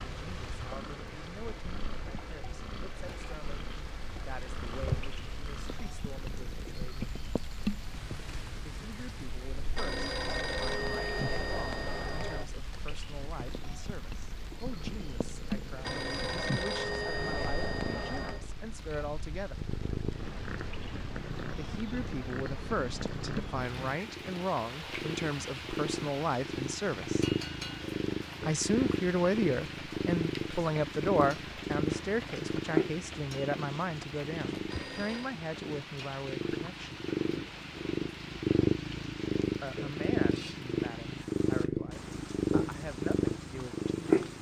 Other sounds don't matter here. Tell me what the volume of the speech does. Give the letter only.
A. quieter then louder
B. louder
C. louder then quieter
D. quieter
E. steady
C.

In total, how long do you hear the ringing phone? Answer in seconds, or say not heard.
6 s.